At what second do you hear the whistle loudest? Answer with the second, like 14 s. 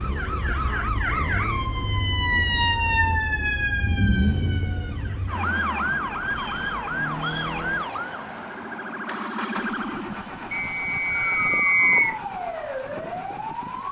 12 s.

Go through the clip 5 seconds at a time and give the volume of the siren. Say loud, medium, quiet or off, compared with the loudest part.
loud, loud, medium.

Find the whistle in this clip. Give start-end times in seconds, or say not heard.
1.0-1.7, 6.3-7.6, 10.5-12.2.